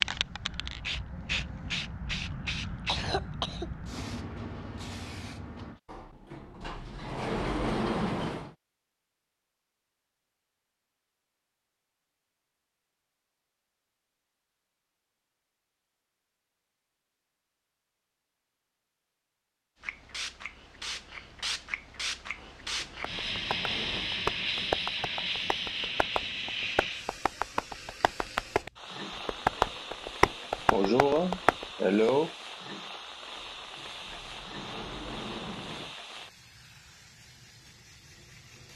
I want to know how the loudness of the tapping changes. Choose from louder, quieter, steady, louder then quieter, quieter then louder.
quieter then louder.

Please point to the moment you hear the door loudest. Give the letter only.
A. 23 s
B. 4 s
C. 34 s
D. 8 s
D.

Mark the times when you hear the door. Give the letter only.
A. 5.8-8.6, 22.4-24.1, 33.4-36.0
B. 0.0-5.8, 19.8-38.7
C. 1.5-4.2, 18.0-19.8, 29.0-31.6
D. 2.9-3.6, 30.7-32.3
A.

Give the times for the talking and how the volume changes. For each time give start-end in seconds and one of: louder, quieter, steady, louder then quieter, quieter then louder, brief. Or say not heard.
not heard.